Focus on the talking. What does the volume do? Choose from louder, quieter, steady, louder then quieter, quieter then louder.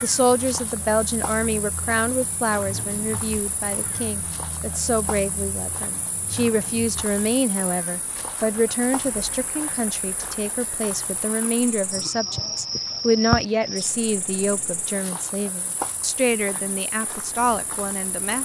steady.